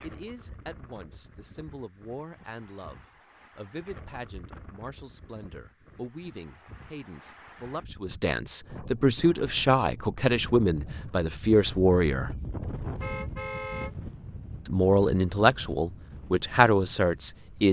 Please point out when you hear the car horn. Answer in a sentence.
You can hear the car horn from 13.0 to 13.9 s.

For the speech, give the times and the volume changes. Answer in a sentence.
The speech can be heard from 0.0 to 12.3 s, getting louder; and briefly from 14.7 to 17.6 s.